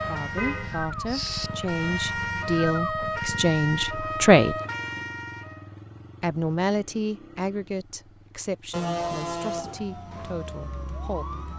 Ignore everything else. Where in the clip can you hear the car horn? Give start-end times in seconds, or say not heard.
0.3-1.5, 8.7-9.8.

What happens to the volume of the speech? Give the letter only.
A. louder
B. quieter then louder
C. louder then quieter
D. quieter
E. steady
C.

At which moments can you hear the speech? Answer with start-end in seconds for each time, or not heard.
0.0-4.5, 6.2-11.2.